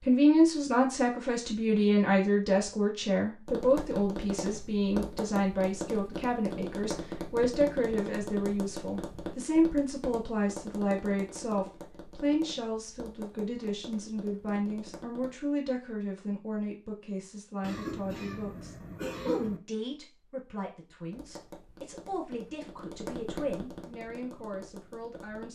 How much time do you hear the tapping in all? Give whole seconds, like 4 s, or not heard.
16 s.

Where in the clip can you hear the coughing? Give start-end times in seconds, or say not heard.
17.6-19.6.